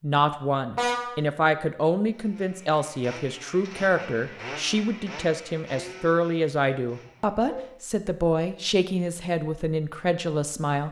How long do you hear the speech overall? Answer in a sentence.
The speech can be heard for 11 seconds in total.